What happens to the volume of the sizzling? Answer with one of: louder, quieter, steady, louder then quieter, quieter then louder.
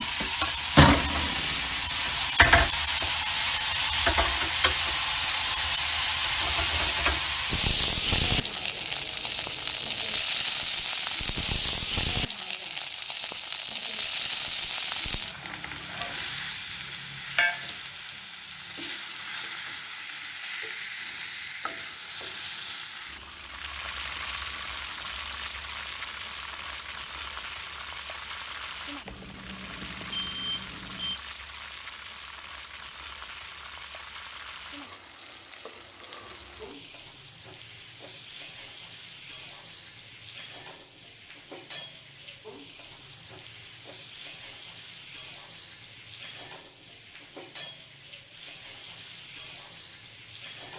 quieter.